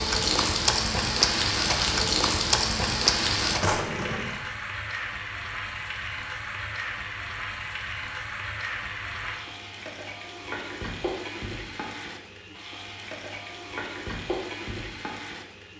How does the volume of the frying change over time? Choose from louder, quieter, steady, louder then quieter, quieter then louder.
quieter.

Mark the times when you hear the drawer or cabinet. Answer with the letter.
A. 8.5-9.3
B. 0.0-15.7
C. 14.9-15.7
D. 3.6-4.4
D.